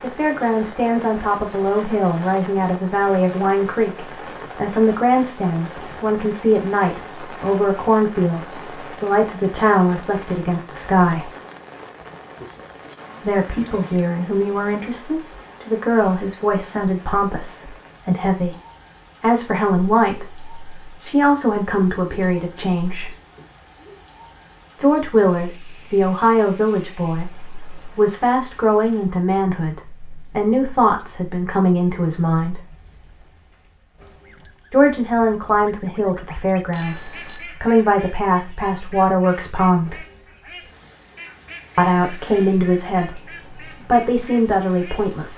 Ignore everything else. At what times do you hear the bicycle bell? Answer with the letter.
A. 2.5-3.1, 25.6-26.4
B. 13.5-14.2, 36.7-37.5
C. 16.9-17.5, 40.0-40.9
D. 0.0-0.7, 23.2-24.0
B.